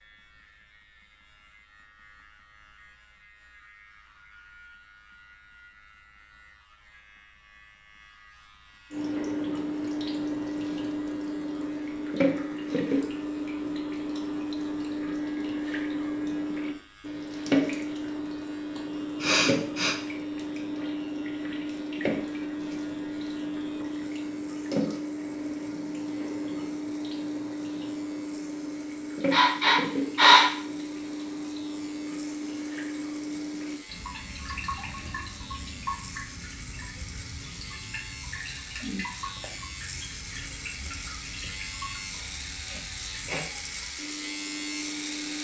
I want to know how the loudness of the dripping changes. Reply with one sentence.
The volume of the dripping goes down.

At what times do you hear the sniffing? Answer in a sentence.
The sniffing can be heard from 18.8 to 19.9 s and from 29.3 to 30.5 s.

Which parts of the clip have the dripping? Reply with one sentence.
The dripping can be heard from 8.9 to 45.3 s.